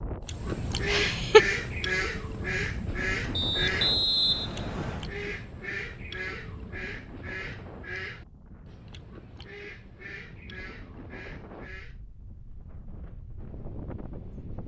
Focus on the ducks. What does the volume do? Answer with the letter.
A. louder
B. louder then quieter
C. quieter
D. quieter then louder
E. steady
C.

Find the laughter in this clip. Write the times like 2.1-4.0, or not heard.
0.8-1.4.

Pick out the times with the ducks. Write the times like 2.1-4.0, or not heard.
0.2-12.0.